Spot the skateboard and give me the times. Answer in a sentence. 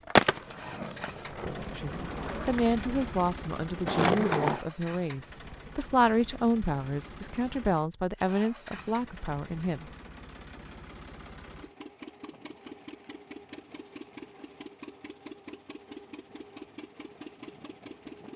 The skateboard can be heard from 0.1 to 4.6 s.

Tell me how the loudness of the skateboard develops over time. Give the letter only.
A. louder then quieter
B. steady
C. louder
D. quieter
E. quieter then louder
E.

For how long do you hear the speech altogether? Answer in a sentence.
The speech can be heard for 8 seconds in total.